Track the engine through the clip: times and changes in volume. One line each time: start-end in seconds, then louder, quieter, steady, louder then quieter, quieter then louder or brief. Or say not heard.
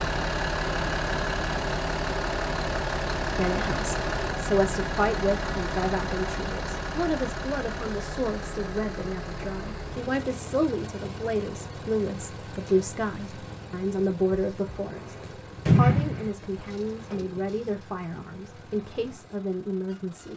0.0-20.3 quieter.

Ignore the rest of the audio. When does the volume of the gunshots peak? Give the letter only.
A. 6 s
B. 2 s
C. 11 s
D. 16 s
D.